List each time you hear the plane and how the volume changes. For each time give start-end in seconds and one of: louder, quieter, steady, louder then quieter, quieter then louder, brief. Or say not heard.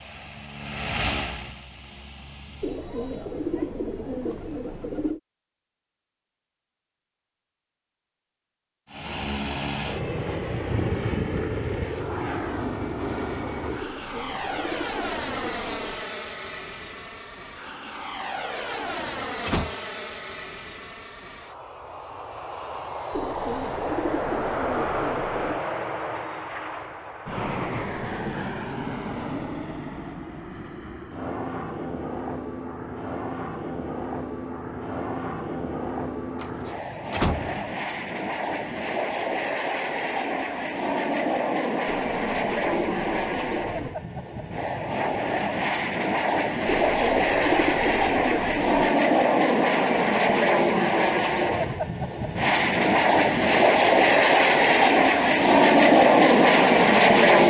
0.0-2.9 brief
8.9-57.4 louder.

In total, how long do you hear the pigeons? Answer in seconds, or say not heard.
12 s.